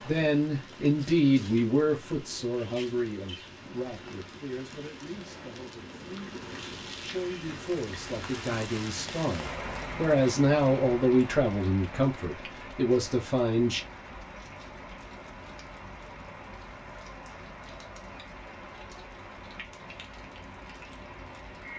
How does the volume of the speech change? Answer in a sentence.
The loudness of the speech goes down, then up.